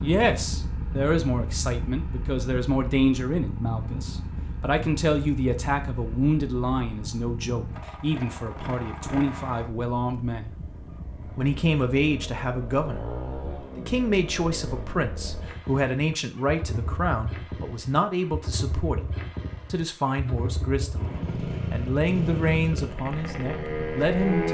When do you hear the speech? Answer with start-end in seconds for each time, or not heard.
0.0-10.5, 11.3-13.1, 13.8-19.1, 19.7-24.4.